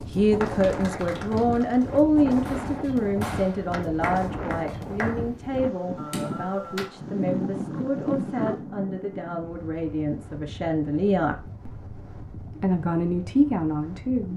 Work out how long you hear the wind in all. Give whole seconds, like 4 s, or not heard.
14 s.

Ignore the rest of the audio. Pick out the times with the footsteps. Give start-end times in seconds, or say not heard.
not heard.